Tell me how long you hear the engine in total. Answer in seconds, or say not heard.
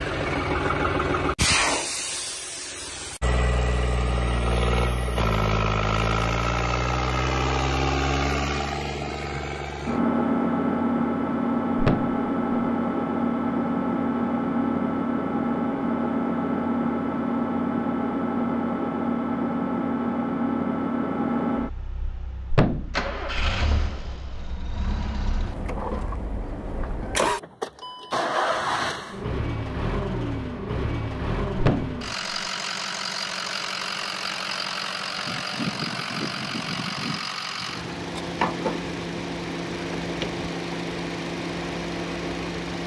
43 s.